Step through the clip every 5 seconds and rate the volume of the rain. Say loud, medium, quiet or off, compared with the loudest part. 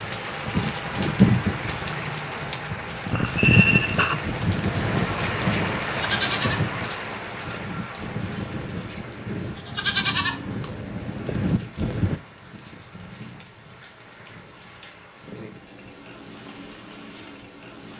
loud, medium, quiet, quiet.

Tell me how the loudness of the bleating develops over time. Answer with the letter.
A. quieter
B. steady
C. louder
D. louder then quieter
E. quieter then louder
E.